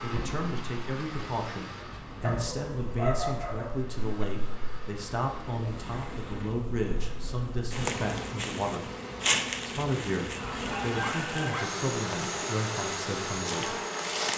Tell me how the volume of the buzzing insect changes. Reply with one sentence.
The volume of the buzzing insect goes up.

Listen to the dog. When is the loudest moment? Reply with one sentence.
The volume of the dog peaks at 3 seconds.